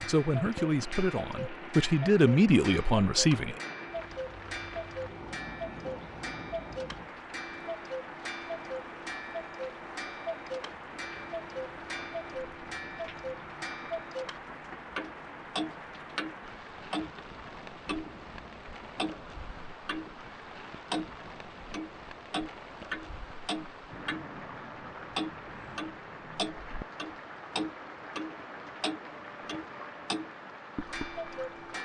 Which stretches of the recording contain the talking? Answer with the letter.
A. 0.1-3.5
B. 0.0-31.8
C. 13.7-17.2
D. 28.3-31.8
A.